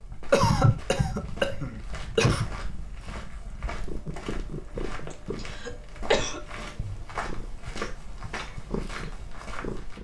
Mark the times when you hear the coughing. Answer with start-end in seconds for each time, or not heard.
0.3-2.5, 5.4-6.4.